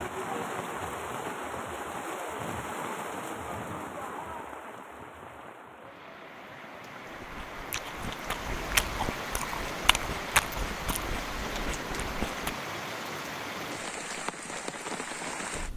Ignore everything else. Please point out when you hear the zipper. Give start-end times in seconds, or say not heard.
not heard.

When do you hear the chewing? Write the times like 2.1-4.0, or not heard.
7.2-12.6.